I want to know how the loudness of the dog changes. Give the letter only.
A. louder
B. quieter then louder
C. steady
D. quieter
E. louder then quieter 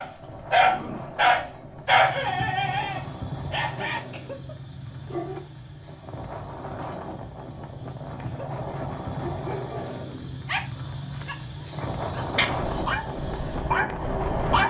B.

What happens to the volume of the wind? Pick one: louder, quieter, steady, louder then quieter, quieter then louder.
louder.